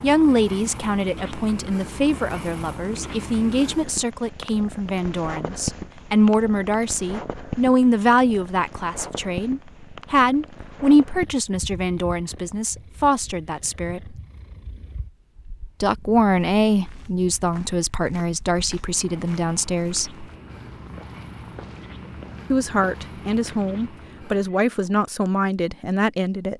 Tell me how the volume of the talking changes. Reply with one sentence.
The loudness of the talking stays about the same.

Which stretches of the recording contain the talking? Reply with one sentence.
The talking can be heard from 0.0 to 14.2 s, from 15.8 to 20.1 s and from 22.5 to 26.5 s.